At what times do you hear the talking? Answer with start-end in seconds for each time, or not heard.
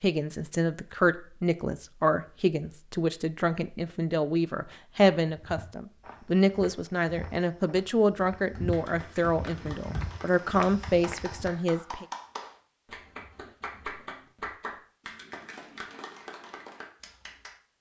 0.0-12.1.